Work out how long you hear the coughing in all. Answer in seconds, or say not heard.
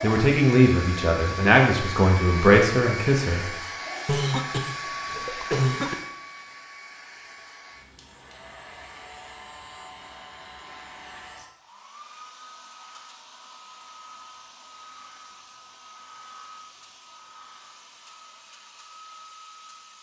2 s.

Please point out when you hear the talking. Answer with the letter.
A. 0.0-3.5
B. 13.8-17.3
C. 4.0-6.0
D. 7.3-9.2
A.